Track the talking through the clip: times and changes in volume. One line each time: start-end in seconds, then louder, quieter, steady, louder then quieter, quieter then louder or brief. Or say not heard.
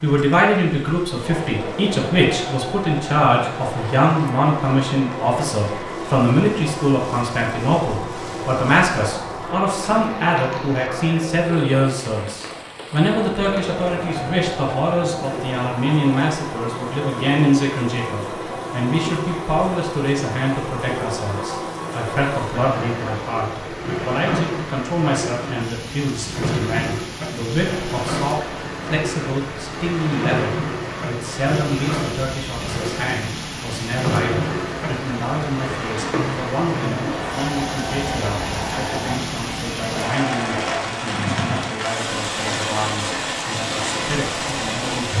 0.0-45.1 quieter.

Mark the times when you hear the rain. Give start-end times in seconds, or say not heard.
0.0-45.1.